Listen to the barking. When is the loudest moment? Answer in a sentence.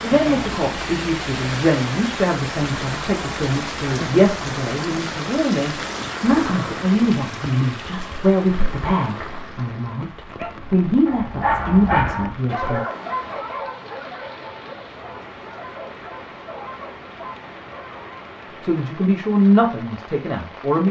The loudest moment of the barking is at 12 seconds.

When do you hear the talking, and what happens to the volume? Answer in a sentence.
You can hear the talking from 0.0 to 12.8 s, at a steady volume; and briefly from 18.6 to 20.8 s.